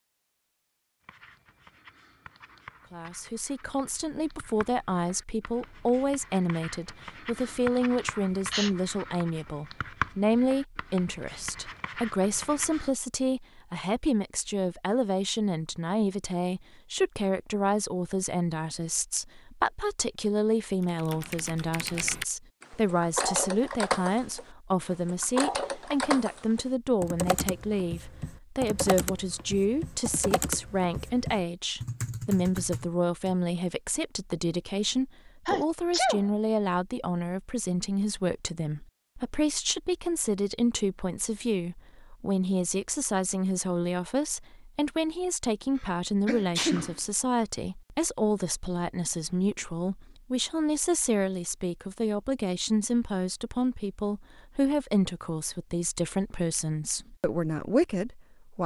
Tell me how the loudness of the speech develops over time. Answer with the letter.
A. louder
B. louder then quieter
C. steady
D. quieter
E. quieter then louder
C.